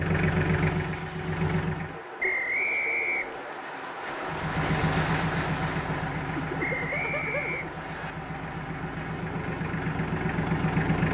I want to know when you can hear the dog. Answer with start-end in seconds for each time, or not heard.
not heard.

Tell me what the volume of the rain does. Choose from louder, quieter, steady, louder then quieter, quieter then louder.
louder then quieter.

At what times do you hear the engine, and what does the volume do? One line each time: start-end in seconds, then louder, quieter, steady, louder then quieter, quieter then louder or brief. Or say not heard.
0.0-2.0 brief
4.2-11.0 quieter then louder.